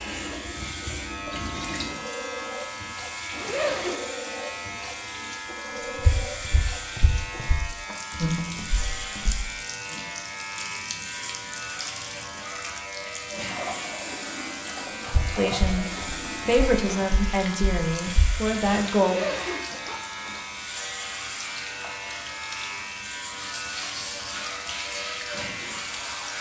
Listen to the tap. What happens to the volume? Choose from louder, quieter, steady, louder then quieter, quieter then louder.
steady.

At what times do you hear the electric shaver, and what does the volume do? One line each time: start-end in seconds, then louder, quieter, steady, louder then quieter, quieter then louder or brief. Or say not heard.
0.0-26.3 steady.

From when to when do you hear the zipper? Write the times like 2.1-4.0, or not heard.
3.3-4.0, 18.9-20.4.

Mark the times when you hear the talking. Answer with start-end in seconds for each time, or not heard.
15.3-19.2.